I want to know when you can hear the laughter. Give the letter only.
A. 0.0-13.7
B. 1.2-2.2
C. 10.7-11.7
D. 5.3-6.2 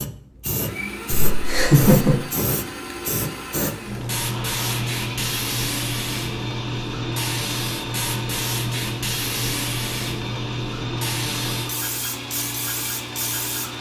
B.